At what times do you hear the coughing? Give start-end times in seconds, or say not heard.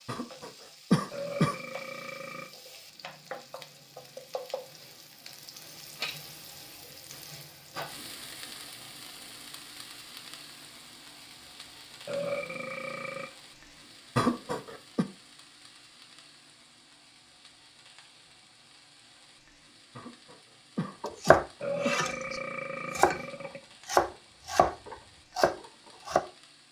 0.1-1.6, 14.2-15.1, 19.9-22.0.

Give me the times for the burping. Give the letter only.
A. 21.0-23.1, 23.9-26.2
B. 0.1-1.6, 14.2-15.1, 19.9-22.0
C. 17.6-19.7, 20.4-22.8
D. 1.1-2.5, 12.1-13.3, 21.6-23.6
D.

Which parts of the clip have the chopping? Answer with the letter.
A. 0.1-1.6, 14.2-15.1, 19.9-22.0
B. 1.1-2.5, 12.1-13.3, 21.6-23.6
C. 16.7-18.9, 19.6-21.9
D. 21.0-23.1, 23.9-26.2
D.